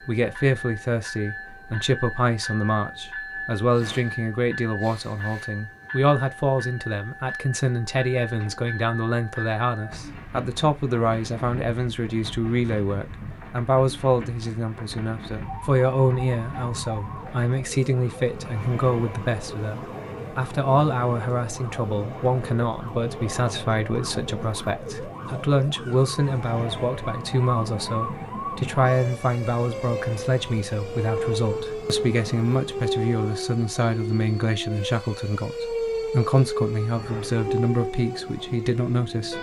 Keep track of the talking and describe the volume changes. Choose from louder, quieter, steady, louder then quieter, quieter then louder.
steady.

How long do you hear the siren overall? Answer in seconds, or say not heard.
24 s.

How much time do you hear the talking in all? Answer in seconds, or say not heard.
39 s.